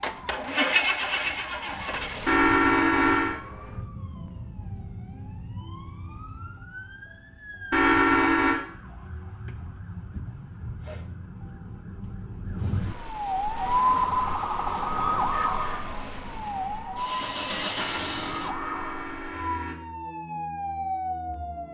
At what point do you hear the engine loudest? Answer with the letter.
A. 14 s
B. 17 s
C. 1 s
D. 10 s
C.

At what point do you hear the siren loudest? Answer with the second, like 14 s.
14 s.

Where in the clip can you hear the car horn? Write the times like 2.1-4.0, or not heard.
2.2-3.4, 7.7-8.6, 17.8-19.8.